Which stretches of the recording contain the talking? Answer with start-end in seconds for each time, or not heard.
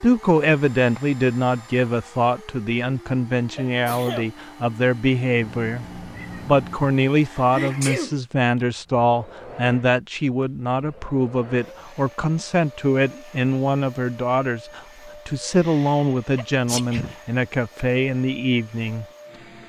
0.0-5.8, 6.5-19.1.